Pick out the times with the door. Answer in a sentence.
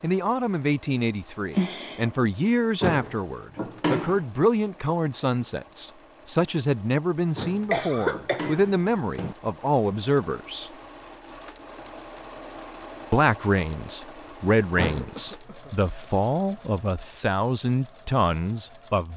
You can hear the door from 2.8 to 4.2 s, from 7.3 to 9.3 s and from 14.8 to 15.2 s.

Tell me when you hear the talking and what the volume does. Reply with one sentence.
The talking can be heard from 0.0 to 10.7 s, at a steady volume; and from 13.1 to 19.1 s, at a steady volume.